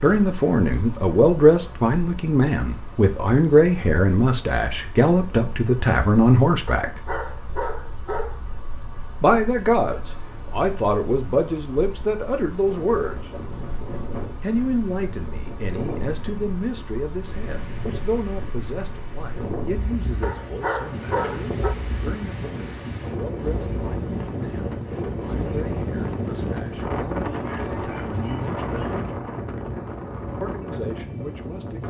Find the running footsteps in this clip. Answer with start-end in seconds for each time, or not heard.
not heard.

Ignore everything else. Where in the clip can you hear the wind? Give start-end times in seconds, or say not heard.
12.7-31.8.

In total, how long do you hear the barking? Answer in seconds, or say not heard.
3 s.